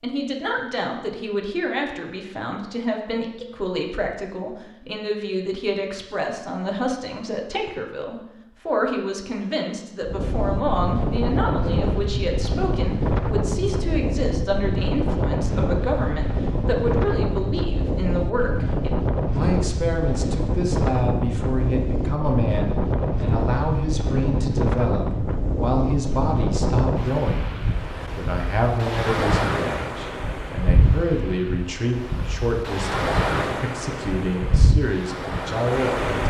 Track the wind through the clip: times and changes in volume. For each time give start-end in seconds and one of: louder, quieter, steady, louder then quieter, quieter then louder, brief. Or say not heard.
10.1-36.2 steady.